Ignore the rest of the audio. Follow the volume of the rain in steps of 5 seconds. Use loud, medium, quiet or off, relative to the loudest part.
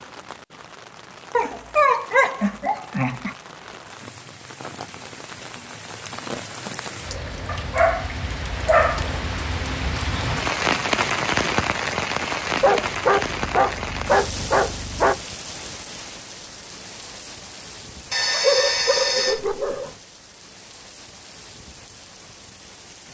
quiet, medium, loud, quiet, quiet.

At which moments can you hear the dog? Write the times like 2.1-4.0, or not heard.
1.3-3.4, 7.5-9.1, 12.6-15.2, 18.1-19.9.